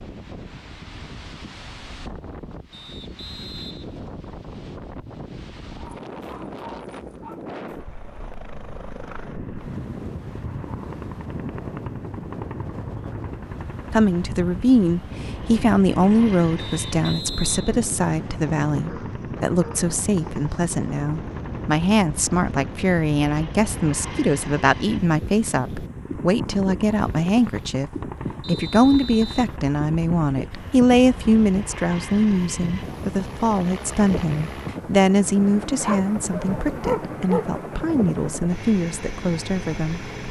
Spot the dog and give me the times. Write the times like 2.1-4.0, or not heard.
5.7-7.4, 18.9-19.9, 35.8-37.6.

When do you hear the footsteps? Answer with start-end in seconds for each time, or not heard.
not heard.